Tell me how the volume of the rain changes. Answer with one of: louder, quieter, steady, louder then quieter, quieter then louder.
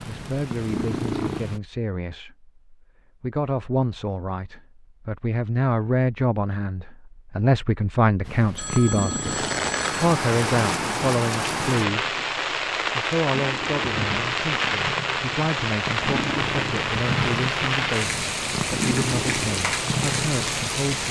steady.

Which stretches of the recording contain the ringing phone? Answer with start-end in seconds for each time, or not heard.
8.6-10.1.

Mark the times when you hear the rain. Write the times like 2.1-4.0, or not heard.
9.2-21.0.